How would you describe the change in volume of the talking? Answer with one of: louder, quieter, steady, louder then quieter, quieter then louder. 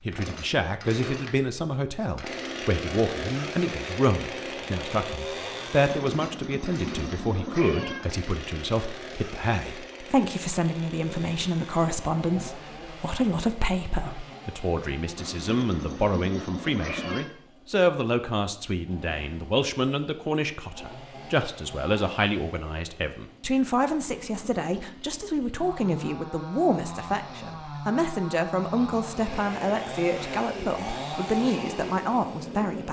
steady.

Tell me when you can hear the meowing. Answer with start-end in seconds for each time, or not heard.
5.8-8.1, 15.2-17.2, 23.8-24.9.